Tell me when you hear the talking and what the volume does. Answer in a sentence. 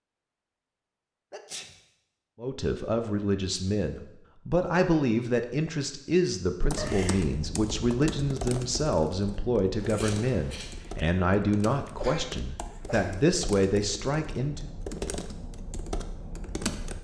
You can hear the talking from 2.4 to 14.7 s, at a steady volume.